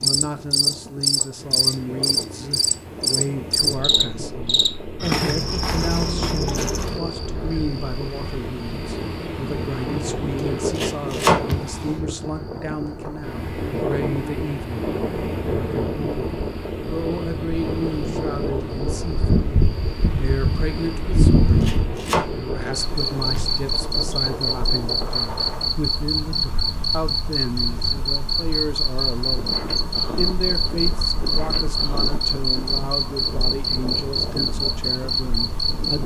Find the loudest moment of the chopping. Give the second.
11 s.